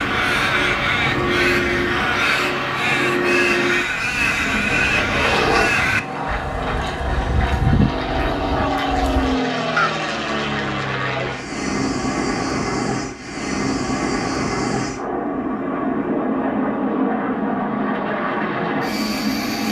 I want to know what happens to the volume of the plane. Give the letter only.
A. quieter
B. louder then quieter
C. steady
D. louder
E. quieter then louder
C.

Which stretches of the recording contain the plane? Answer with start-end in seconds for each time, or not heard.
0.0-19.6.